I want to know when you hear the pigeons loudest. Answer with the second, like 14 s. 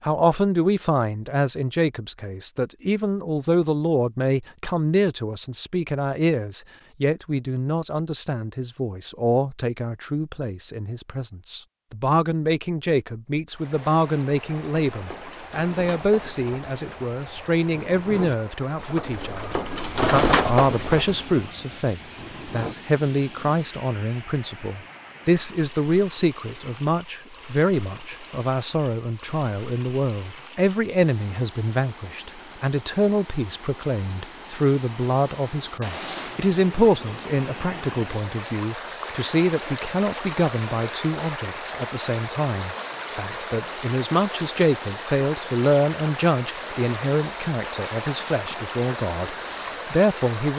20 s.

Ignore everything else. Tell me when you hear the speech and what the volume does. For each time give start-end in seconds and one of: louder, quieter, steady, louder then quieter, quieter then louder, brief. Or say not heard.
0.0-50.5 steady.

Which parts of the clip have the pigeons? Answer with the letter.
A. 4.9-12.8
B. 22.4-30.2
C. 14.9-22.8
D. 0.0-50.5
C.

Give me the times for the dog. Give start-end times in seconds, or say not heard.
not heard.